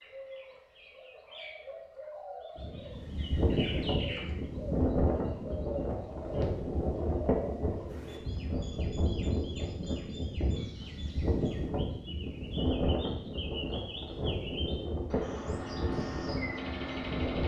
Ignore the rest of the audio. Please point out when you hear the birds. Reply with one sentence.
The birds can be heard from 0.0 to 17.4 s.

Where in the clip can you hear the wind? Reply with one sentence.
You can hear the wind from 2.5 to 17.4 s.